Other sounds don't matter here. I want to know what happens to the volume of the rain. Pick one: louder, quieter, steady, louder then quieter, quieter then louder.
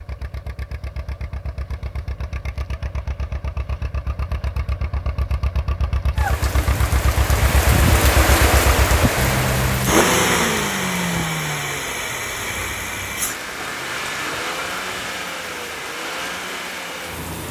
quieter.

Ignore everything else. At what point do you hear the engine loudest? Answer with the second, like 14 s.
10 s.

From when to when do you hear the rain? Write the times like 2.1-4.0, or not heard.
6.2-17.4.